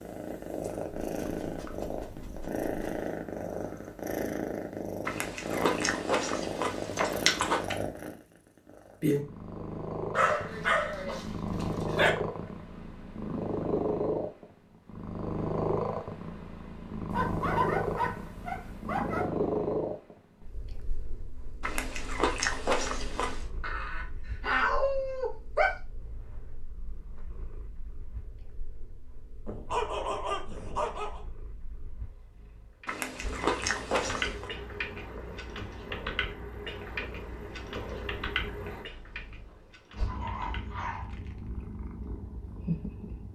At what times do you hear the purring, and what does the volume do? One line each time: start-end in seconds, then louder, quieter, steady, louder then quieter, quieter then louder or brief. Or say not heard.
0.0-43.2 quieter then louder.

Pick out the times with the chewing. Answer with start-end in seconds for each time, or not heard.
5.0-7.8, 21.6-23.4, 32.9-34.5.